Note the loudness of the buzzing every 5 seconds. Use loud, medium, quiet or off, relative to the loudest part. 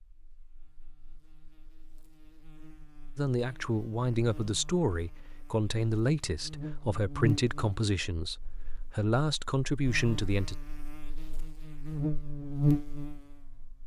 quiet, medium, loud.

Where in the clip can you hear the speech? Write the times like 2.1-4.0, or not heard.
3.1-10.6.